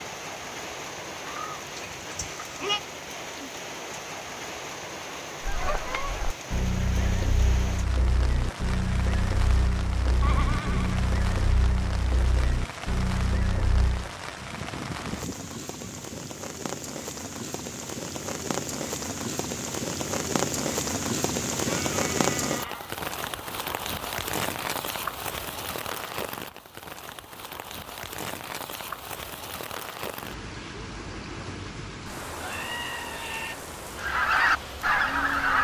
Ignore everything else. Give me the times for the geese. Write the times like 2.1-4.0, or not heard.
5.4-14.1, 34.0-35.5.